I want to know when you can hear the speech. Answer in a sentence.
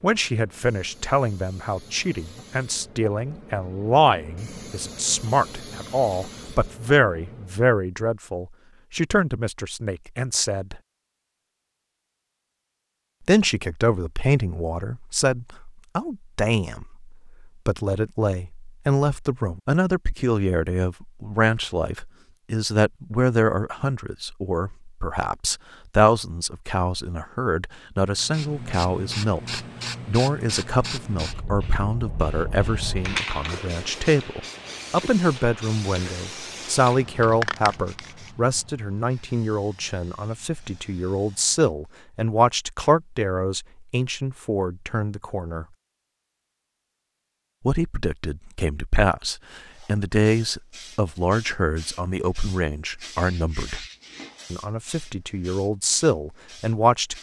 The speech can be heard from 0.0 to 10.8 s, from 13.2 to 45.6 s, from 47.6 to 53.9 s and from 54.5 to 57.1 s.